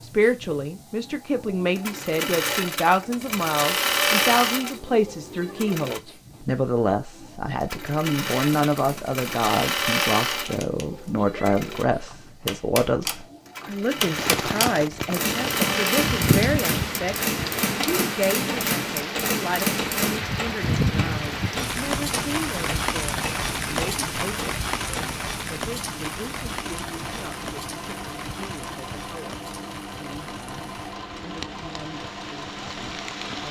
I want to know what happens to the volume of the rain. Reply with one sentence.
The loudness of the rain goes down.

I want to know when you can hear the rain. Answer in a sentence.
The rain can be heard from 14.1 to 33.4 s.